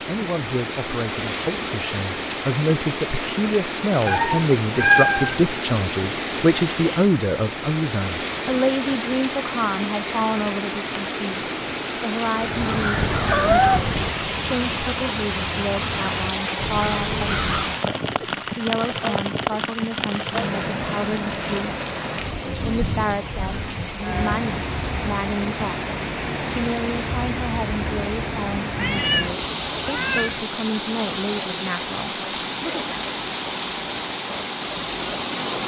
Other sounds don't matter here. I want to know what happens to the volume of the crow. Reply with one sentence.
The volume of the crow goes down, then up.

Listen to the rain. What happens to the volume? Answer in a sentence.
The loudness of the rain stays about the same.